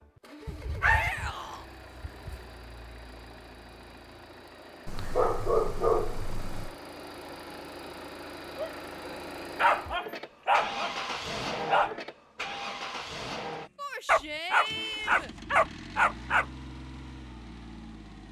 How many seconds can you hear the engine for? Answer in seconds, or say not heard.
18 s.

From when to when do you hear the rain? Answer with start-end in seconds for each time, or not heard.
not heard.